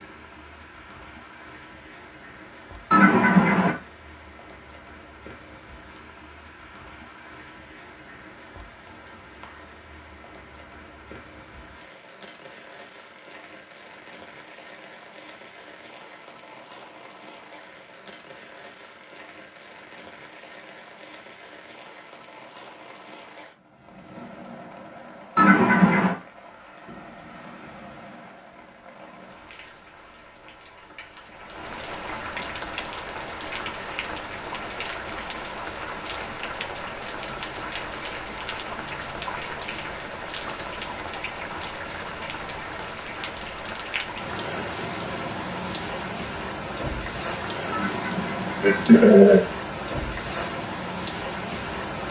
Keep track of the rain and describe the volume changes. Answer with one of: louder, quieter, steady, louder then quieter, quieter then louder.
louder.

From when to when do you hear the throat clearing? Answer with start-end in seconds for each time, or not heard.
2.9-3.8, 25.4-26.1, 47.7-49.4.